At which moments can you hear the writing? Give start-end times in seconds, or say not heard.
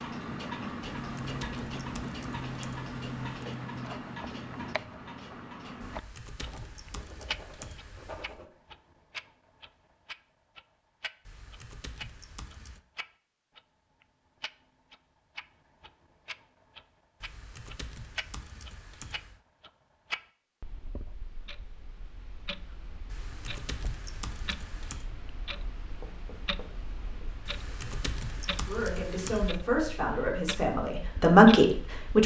6.5-8.4, 25.4-27.5.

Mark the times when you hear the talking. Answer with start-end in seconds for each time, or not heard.
28.6-32.2.